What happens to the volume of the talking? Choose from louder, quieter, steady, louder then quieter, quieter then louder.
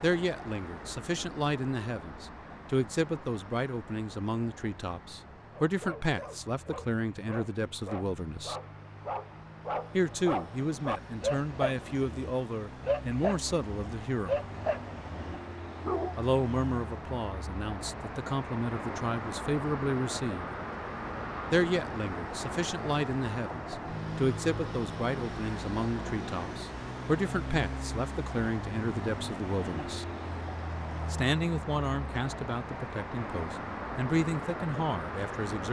steady.